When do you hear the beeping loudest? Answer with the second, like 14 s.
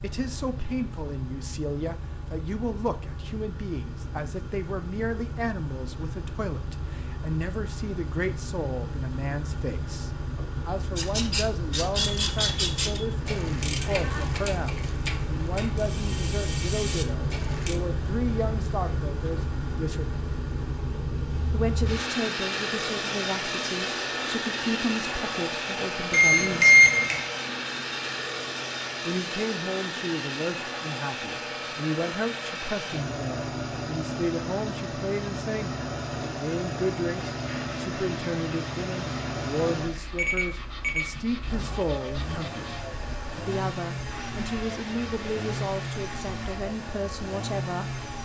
27 s.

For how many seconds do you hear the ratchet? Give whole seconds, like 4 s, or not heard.
7 s.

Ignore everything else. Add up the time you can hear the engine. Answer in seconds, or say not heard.
48 s.